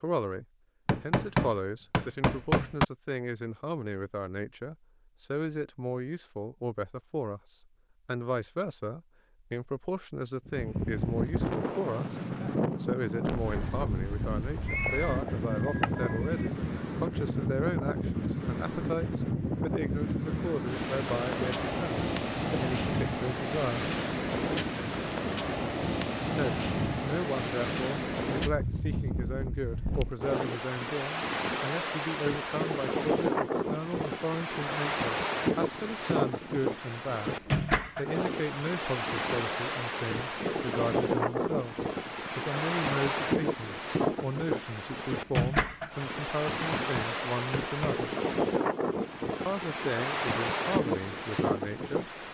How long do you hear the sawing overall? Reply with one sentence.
The sawing can't be heard in this clip.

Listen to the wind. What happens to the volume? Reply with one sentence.
The loudness of the wind stays about the same.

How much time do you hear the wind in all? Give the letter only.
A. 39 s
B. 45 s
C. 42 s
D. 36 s
C.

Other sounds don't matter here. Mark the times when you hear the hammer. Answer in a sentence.
You can hear the hammer from 0.8 to 2.9 s and from 46.5 to 48.0 s.